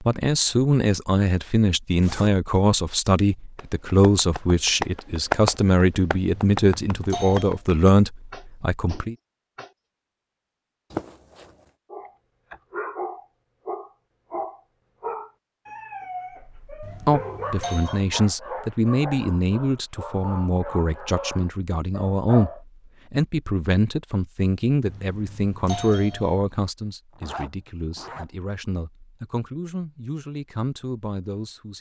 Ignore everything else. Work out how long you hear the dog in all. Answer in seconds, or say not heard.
11 s.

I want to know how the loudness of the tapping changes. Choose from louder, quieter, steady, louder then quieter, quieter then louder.
louder then quieter.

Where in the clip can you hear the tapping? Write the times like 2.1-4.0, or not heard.
3.5-9.8.